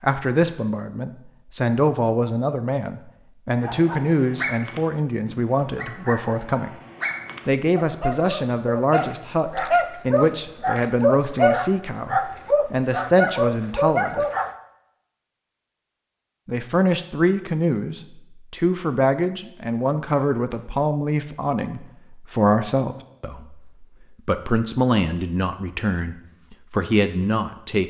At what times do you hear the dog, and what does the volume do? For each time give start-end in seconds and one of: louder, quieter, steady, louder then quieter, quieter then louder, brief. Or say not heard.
3.5-14.6 louder.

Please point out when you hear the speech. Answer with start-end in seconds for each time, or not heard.
0.0-6.7, 7.5-14.2, 16.4-27.8.